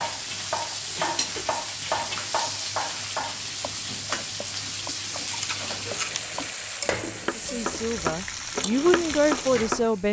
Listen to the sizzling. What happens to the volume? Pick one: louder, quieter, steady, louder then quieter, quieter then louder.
steady.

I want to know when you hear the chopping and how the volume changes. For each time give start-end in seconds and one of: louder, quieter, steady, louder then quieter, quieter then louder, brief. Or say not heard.
0.0-9.8 quieter then louder.